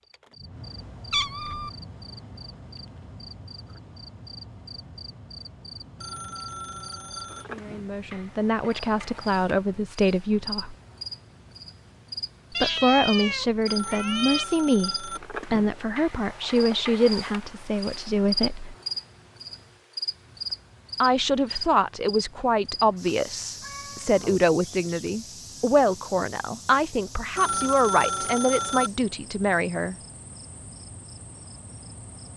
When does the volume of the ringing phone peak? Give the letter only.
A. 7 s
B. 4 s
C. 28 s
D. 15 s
C.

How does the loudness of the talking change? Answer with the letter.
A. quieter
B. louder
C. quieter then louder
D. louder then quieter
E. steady
E.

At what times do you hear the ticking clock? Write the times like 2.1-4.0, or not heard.
not heard.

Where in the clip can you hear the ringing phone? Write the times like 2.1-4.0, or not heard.
6.0-7.5, 13.7-15.2, 27.4-28.9.